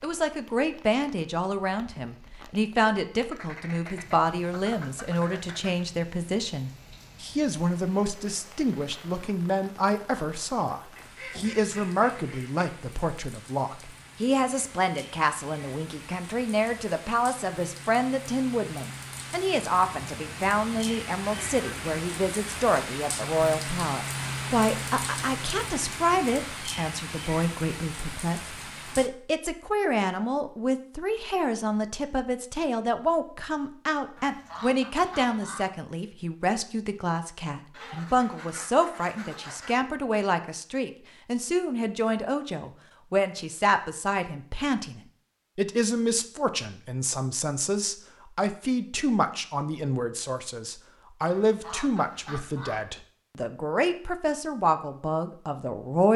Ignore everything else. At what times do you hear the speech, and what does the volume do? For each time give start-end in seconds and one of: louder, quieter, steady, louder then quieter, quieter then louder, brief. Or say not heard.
0.0-56.1 steady.